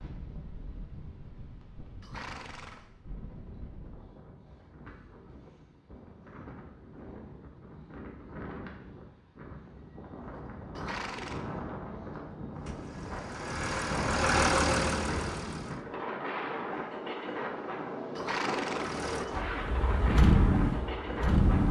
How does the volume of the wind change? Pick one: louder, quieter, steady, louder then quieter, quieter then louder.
louder.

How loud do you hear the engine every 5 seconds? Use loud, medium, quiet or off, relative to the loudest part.
off, off, loud, quiet, loud.